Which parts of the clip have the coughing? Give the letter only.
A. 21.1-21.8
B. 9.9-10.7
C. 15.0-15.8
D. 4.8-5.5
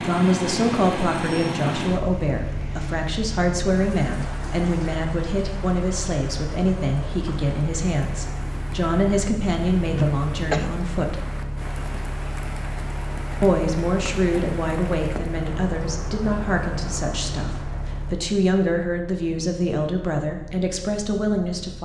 B.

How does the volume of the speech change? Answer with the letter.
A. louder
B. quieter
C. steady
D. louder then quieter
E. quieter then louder
C.